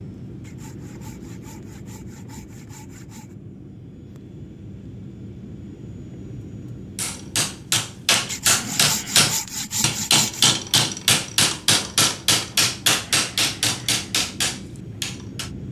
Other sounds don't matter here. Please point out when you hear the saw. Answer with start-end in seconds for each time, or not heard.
0.4-3.4, 8.2-10.5.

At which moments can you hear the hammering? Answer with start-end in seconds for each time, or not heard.
7.0-15.5.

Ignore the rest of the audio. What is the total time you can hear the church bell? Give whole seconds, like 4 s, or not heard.
not heard.